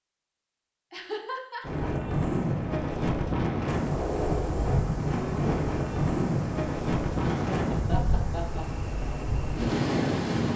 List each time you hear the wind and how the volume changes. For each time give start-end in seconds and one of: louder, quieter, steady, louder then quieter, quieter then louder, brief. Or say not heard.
1.6-10.5 steady.